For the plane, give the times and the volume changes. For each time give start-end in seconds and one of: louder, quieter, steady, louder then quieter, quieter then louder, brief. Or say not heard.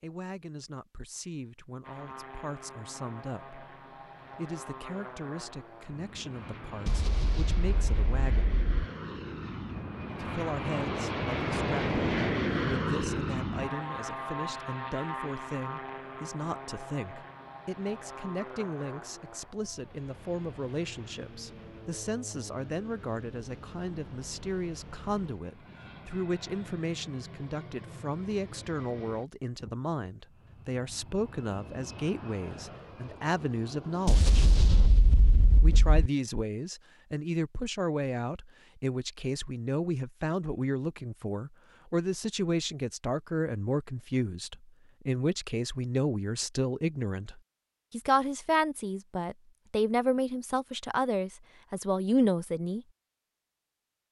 1.8-34.9 louder then quieter.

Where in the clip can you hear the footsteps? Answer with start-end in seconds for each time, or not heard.
not heard.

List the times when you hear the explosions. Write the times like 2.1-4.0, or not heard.
6.8-8.8, 34.0-36.1.